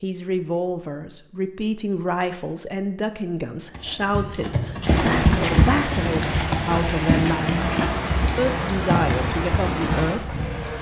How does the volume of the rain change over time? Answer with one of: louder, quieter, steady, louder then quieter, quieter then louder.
steady.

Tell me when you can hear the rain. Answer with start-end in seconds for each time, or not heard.
4.8-10.7.